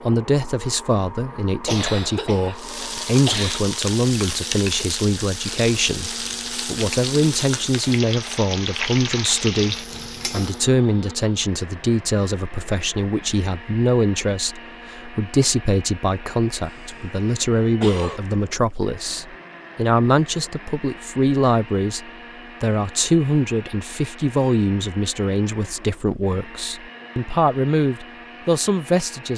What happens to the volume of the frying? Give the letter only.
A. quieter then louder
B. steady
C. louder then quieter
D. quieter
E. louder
B.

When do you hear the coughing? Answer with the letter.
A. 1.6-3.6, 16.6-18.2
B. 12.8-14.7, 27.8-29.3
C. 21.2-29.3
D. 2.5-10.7
A.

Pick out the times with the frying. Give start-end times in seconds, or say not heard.
2.5-10.7.